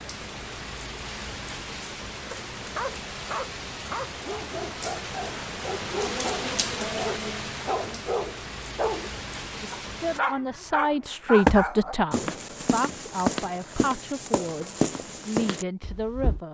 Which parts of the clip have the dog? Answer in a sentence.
You can hear the dog from 2.3 to 9.1 s and from 9.7 to 11.9 s.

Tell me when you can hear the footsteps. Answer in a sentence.
The footsteps can be heard from 11.4 to 16.4 s.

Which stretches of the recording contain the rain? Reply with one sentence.
The rain can be heard from 0.0 to 10.2 s.